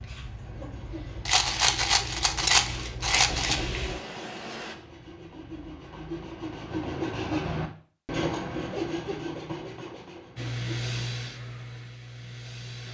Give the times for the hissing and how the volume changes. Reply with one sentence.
You can hear the hissing from 0.0 to 4.8 s, getting louder; and briefly from 10.3 to 12.9 s.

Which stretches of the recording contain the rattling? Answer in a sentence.
You can hear the rattling from 1.2 to 3.6 s.